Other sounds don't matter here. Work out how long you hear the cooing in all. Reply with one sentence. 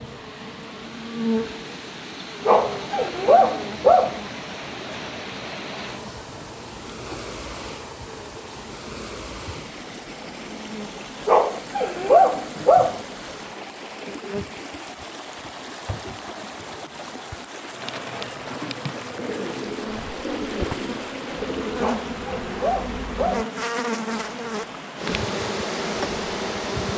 The cooing can be heard for 3 seconds in total.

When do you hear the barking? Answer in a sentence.
The barking can be heard from 2.5 to 4.2 s, from 11.2 to 13.0 s and from 21.8 to 23.6 s.